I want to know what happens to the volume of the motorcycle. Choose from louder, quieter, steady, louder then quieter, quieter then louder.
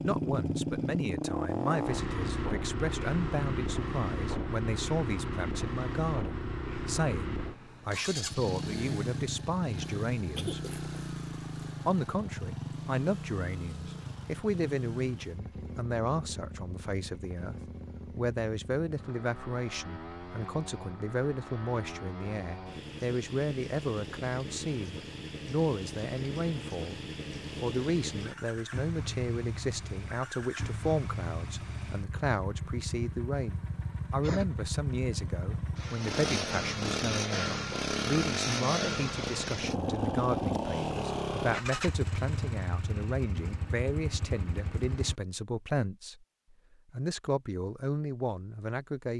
quieter then louder.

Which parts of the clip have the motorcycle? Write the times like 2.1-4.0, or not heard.
0.0-45.1.